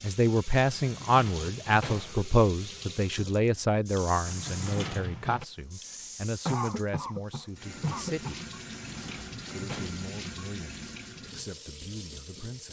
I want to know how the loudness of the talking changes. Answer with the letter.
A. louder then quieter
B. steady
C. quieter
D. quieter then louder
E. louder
C.